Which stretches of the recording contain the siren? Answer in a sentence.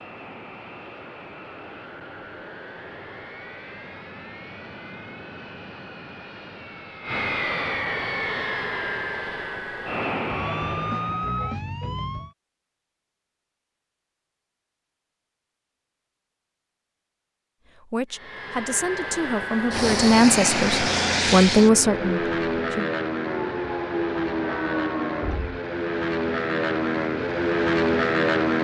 The siren can be heard from 10.2 to 12.3 s and from 23.1 to 25.6 s.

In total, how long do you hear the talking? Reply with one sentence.
You can hear the talking for 5 seconds altogether.